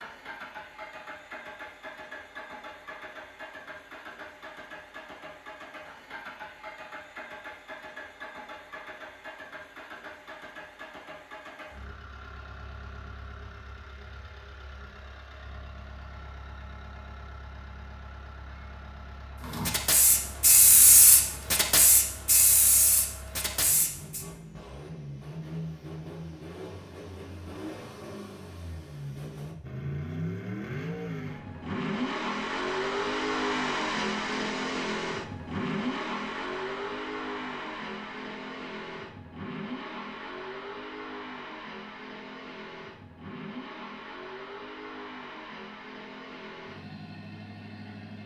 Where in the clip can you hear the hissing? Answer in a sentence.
The hissing can be heard from 19.4 to 24.2 s.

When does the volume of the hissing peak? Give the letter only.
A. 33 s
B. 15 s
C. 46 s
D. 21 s
D.